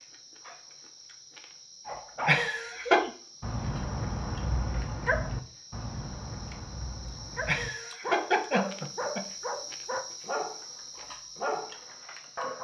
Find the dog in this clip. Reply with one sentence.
You can hear the dog from 1.9 to 12.5 s.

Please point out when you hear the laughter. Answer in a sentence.
The laughter can be heard from 2.2 to 3.0 s and from 7.5 to 9.2 s.